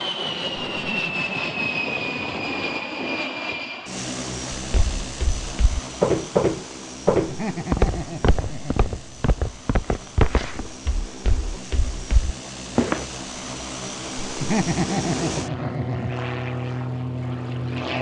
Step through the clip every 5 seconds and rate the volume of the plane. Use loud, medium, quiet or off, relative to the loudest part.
loud, medium, medium, loud.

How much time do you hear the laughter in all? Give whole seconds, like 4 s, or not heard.
5 s.